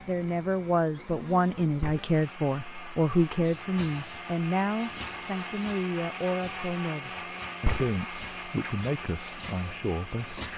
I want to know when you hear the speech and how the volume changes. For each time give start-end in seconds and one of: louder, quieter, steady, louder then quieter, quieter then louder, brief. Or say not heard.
0.1-10.5 quieter.